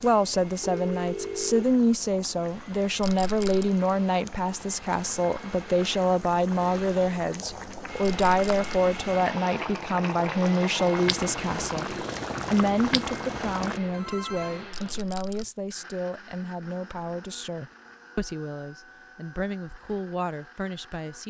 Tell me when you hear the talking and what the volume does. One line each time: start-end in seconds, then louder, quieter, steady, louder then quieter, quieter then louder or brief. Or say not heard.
0.0-21.2 quieter.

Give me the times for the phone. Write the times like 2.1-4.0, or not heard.
0.6-1.6, 13.8-14.7.